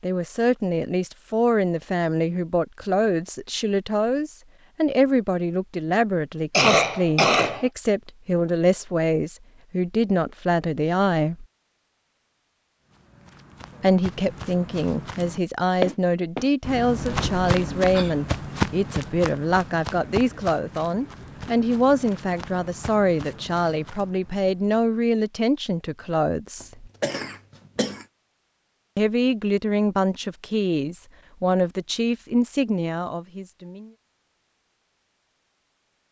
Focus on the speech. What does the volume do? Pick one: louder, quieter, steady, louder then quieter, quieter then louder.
steady.